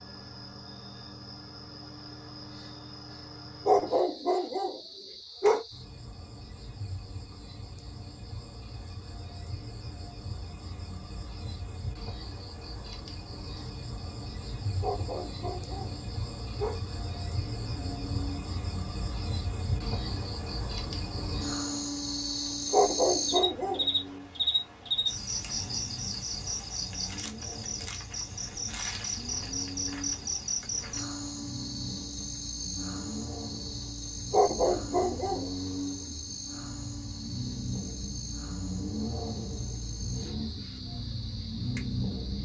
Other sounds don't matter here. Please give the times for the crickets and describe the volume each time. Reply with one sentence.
You can hear the crickets from 0.0 to 42.4 s, getting louder then quieter.